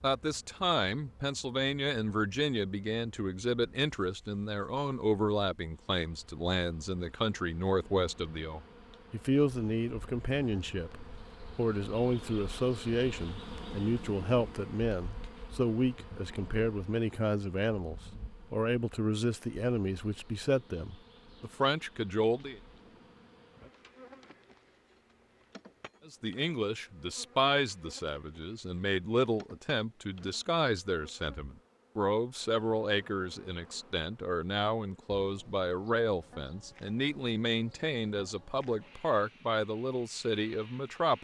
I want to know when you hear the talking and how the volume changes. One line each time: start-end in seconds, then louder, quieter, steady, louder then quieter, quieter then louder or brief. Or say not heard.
0.0-22.6 steady
26.1-41.1 steady.